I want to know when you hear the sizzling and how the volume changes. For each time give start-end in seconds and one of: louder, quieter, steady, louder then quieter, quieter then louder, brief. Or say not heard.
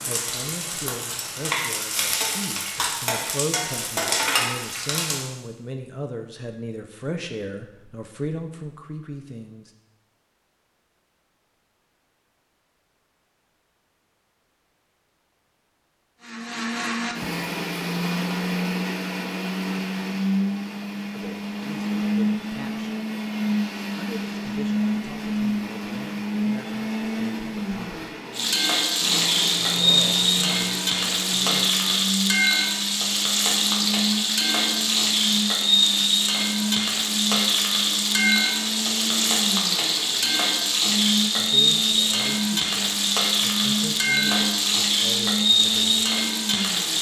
0.0-5.3 louder
28.3-46.9 steady.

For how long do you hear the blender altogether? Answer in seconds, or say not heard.
31 s.